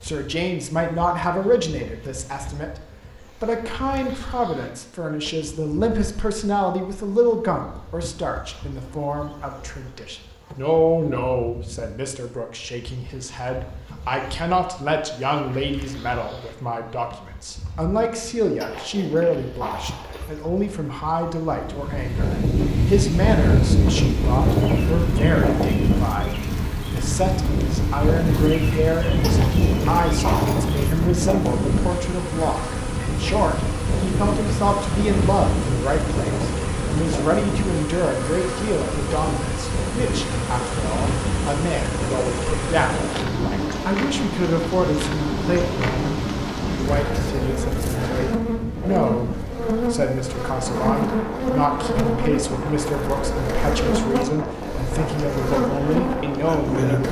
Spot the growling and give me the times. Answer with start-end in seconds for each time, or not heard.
18.6-20.4, 29.2-30.9.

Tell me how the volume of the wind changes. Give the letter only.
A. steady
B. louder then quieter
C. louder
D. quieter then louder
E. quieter
E.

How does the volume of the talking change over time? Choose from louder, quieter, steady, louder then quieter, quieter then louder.
steady.